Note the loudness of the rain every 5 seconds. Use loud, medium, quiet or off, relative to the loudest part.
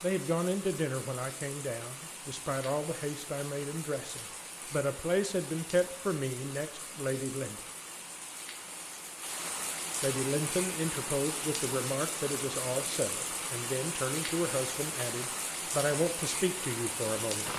medium, medium, loud, loud.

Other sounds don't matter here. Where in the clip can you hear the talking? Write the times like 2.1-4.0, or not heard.
0.0-7.6, 10.0-17.5.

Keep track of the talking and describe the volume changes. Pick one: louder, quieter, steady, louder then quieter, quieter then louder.
steady.